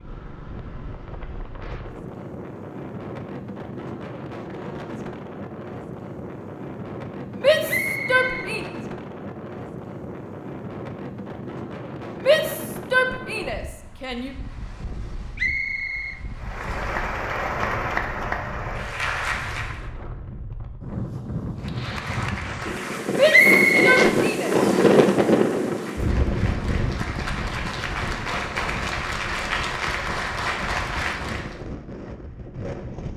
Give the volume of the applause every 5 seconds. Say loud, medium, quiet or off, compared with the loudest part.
off, off, off, loud, medium, loud, loud.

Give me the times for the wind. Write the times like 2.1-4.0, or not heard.
0.0-33.1.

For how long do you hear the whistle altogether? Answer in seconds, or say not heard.
4 s.